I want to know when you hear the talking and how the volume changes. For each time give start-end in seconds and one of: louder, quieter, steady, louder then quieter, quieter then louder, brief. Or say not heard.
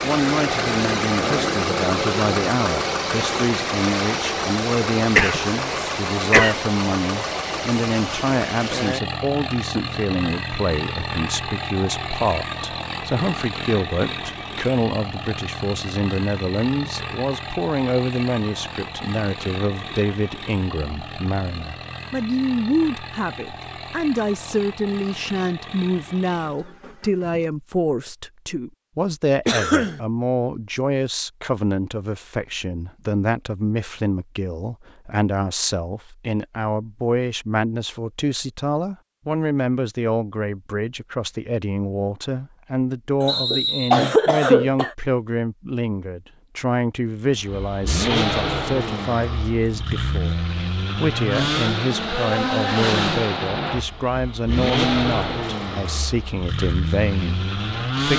0.0-58.1 steady.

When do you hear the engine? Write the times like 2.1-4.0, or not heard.
0.0-27.6, 47.3-58.1.